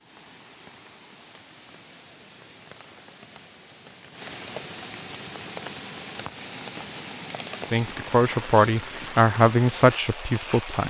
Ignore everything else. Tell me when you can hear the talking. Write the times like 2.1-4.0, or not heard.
7.7-10.8.